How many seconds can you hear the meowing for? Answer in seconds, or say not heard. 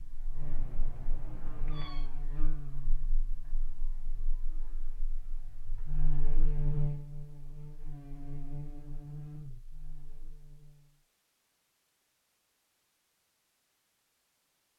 2 s.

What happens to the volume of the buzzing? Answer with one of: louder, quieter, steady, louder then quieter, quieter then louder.
louder then quieter.